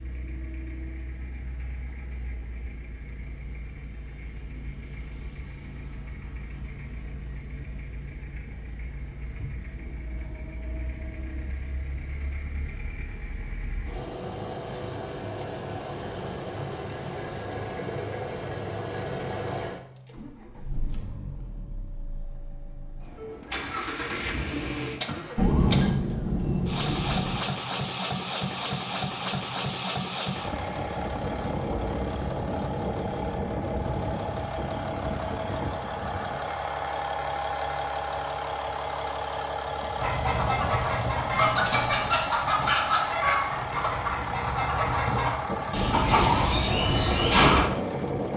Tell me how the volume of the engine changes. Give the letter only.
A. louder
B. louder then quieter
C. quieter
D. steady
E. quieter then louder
A.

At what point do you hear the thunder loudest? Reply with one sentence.
The volume of the thunder peaks at 26 seconds.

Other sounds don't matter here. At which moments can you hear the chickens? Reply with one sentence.
You can hear the chickens from 40.0 to 47.6 s.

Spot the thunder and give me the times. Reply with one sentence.
You can hear the thunder from 25.4 to 27.4 s.